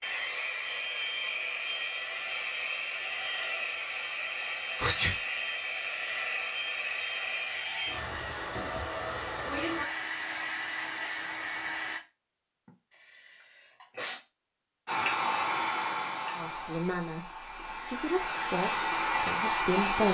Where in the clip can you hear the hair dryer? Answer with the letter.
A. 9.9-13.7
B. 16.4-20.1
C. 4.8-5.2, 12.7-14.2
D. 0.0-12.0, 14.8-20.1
D.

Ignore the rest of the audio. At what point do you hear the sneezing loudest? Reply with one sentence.
The loudest moment of the sneezing is at 5 seconds.